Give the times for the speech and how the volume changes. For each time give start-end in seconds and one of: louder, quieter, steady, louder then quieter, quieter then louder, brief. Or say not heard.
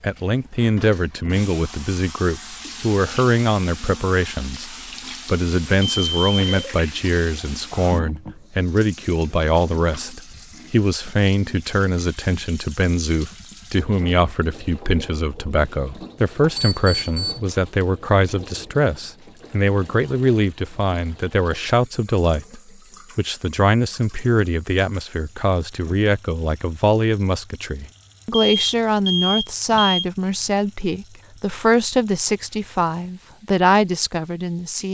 0.0-34.8 steady.